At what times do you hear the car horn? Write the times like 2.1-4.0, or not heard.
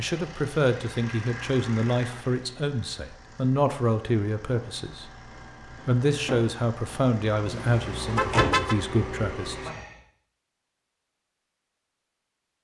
7.5-8.8.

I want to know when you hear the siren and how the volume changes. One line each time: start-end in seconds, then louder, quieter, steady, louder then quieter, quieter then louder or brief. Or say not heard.
not heard.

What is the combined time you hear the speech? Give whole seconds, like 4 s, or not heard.
10 s.